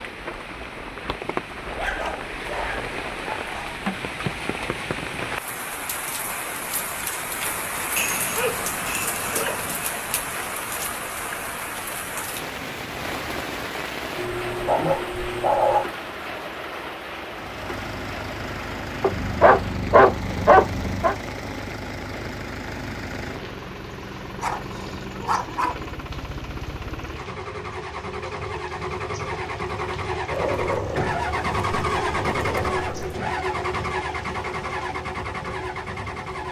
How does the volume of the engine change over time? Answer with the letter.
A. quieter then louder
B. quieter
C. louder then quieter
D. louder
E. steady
D.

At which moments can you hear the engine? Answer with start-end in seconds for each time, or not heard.
17.2-36.4.